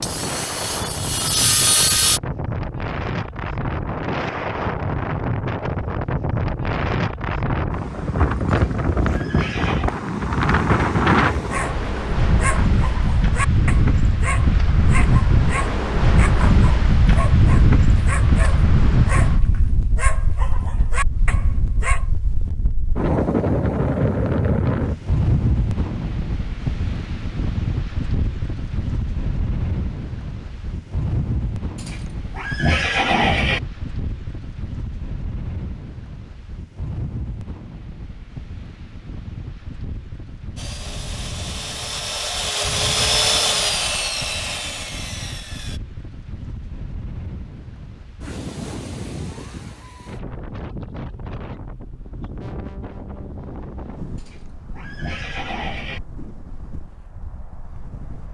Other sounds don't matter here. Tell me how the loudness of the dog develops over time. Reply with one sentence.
The loudness of the dog stays about the same.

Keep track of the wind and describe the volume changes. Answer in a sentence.
The loudness of the wind goes down.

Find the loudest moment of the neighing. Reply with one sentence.
The volume of the neighing peaks at 33 seconds.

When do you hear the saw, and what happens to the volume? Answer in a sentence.
You can hear the saw briefly from 0.0 to 2.2 s; and from 40.5 to 45.8 s, getting louder then quieter.